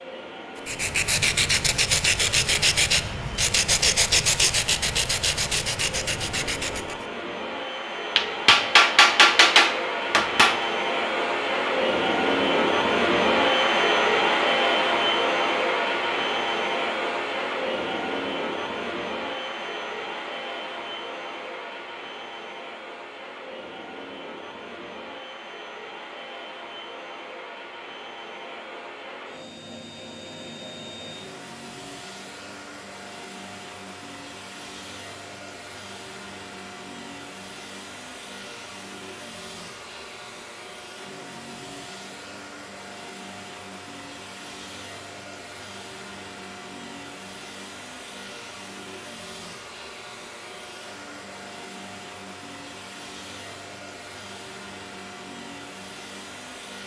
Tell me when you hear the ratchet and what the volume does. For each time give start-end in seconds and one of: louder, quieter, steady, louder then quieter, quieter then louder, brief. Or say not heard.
not heard.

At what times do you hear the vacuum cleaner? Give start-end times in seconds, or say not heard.
0.0-56.8.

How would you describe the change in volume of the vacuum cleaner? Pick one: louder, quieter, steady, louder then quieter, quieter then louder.
louder then quieter.